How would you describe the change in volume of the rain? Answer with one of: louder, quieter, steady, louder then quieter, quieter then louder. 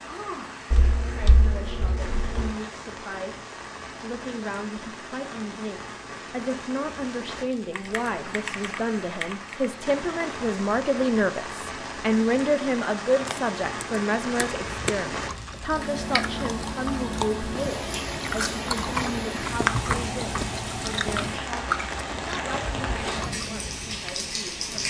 louder.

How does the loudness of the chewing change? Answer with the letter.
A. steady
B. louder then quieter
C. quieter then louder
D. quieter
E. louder
B.